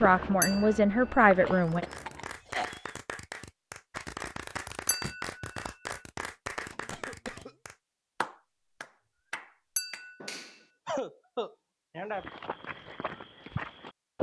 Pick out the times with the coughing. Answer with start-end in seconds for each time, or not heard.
1.4-3.0, 6.7-7.5, 10.2-12.2.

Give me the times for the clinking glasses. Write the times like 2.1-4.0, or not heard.
0.4-1.0, 4.8-5.2, 9.8-10.3.